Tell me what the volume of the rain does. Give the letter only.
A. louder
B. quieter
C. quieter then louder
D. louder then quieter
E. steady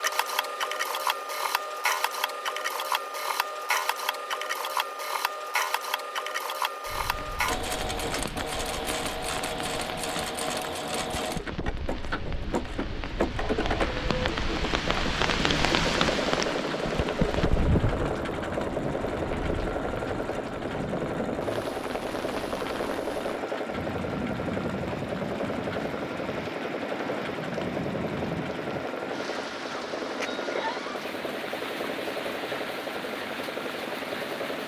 D.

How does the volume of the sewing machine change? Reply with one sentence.
The volume of the sewing machine stays about the same.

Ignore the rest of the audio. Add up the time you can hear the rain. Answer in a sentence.
You can hear the rain for 28 seconds altogether.